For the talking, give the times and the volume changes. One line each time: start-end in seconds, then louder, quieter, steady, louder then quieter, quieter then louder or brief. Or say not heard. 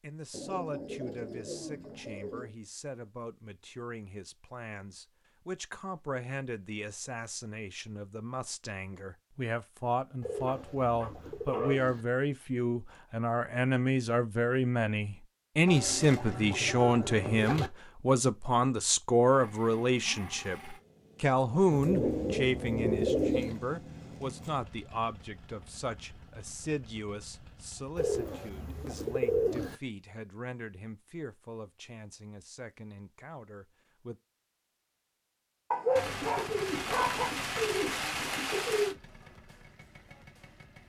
0.0-34.1 louder then quieter.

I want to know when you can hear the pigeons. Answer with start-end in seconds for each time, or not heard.
0.3-2.5, 10.2-12.1, 15.7-17.7, 21.7-23.6, 27.9-29.8, 36.0-39.0.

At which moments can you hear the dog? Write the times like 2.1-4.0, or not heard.
10.4-11.8, 35.7-37.4.